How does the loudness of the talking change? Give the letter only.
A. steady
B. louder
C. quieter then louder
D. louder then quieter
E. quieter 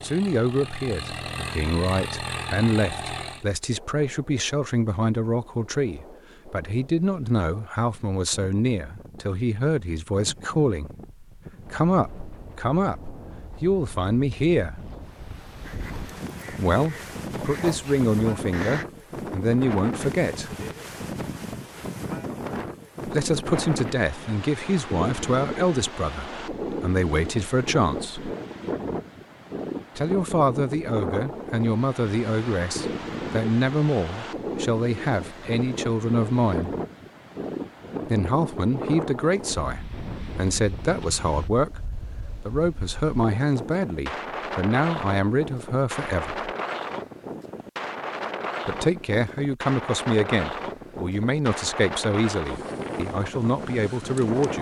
A.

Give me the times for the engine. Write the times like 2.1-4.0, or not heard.
0.0-3.5.